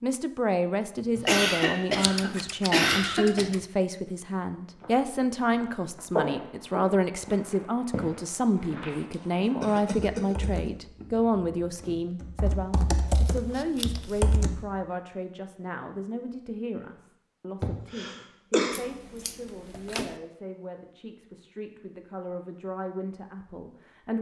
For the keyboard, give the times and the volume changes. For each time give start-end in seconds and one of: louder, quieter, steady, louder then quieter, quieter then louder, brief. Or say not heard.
10.2-14.7 quieter then louder.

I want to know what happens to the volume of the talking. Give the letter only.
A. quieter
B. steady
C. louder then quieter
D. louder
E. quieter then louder
A.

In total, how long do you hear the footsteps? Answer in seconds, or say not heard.
6 s.